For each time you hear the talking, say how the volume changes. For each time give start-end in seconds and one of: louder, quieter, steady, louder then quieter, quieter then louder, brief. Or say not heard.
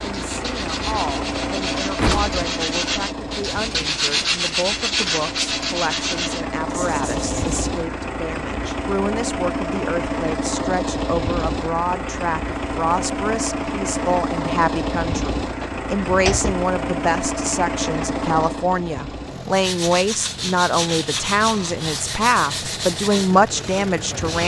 0.0-24.4 louder.